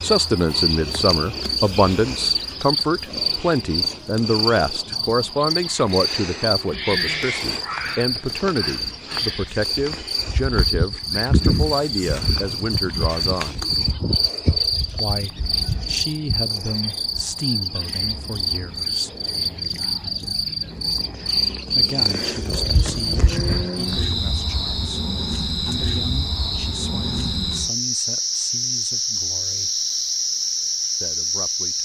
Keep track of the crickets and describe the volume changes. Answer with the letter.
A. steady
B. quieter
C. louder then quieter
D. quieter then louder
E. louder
A.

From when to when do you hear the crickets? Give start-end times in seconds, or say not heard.
0.0-31.8.